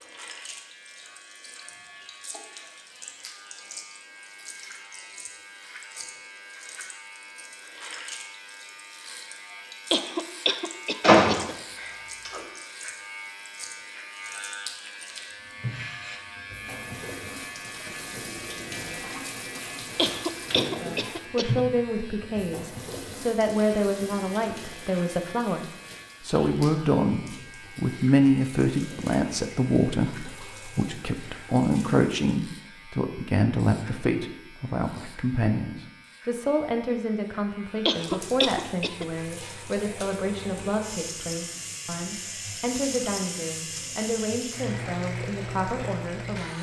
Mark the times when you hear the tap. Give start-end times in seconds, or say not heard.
0.0-32.2, 37.9-46.5.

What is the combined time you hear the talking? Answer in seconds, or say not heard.
26 s.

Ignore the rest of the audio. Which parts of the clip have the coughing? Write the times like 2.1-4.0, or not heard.
9.9-11.6, 19.9-21.6, 37.9-39.0.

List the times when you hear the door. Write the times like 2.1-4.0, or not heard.
11.0-12.4.